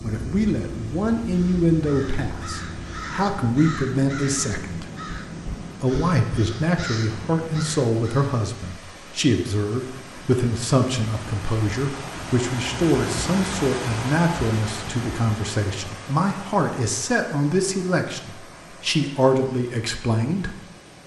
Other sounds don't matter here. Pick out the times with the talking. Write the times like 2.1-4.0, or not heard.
0.0-4.8, 5.8-20.6.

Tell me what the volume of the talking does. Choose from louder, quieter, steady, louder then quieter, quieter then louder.
steady.